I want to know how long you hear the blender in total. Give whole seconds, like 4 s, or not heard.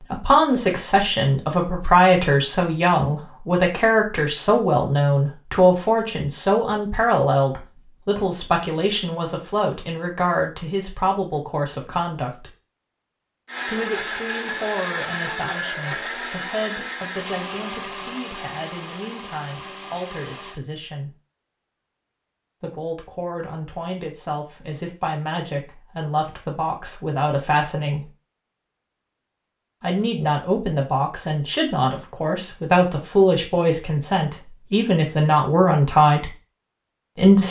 7 s.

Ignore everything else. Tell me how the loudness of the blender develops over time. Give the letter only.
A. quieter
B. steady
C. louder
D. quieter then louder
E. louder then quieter
A.